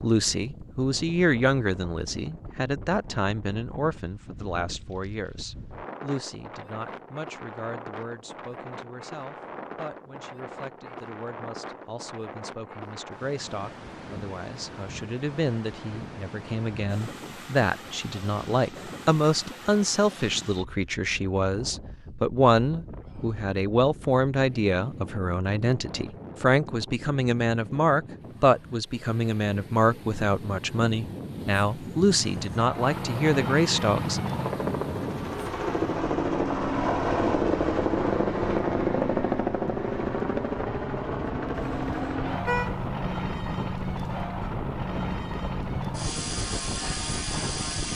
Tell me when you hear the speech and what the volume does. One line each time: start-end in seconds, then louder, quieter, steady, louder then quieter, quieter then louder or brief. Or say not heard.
0.0-34.3 quieter then louder.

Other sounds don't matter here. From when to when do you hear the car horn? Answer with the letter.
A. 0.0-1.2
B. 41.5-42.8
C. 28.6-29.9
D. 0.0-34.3
B.